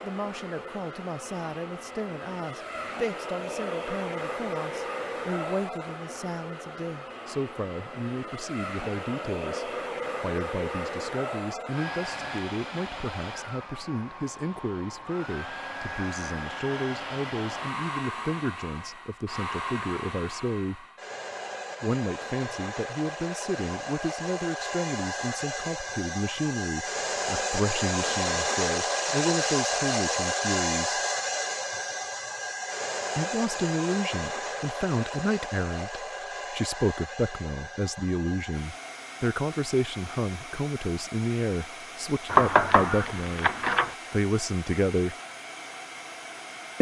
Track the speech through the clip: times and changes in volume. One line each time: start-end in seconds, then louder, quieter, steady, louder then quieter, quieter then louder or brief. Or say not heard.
0.0-20.9 steady
21.8-31.0 steady
33.1-43.5 steady
44.1-45.1 brief.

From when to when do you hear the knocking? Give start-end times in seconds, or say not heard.
42.2-44.0.